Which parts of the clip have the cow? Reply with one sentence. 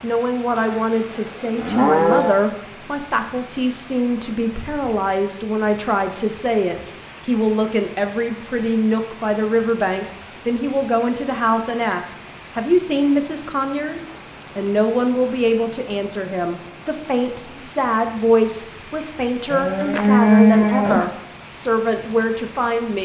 The cow can be heard from 0.6 to 2.4 s and from 19.5 to 21.1 s.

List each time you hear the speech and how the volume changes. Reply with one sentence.
You can hear the speech from 0.0 to 23.0 s, at a steady volume.